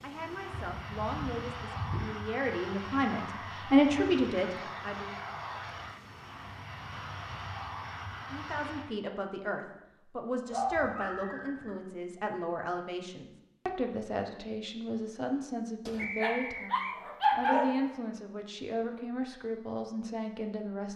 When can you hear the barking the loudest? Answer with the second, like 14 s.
17 s.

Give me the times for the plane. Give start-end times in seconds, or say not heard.
0.0-8.9.